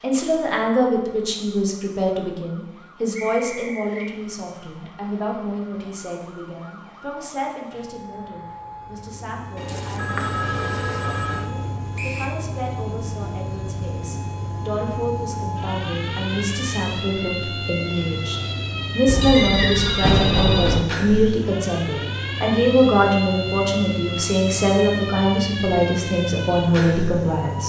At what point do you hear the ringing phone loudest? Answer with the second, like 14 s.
20 s.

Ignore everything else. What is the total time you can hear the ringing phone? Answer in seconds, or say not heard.
4 s.